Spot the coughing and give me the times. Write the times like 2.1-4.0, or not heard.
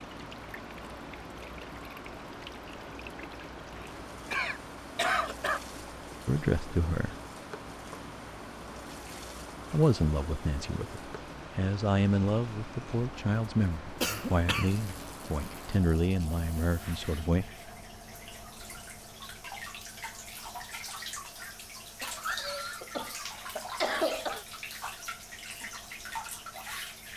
4.3-5.6, 14.0-14.8, 22.0-24.4.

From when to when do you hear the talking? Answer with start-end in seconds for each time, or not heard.
6.2-7.2, 9.7-17.5.